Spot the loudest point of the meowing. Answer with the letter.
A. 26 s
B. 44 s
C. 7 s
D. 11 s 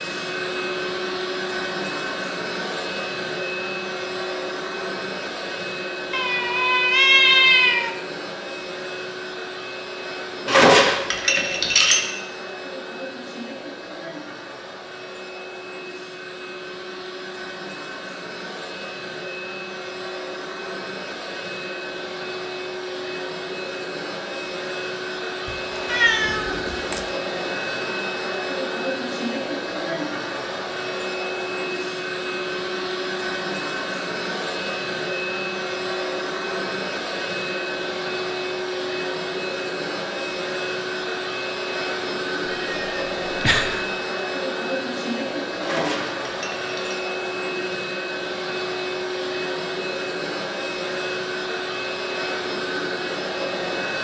C.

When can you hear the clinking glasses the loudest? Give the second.
11 s.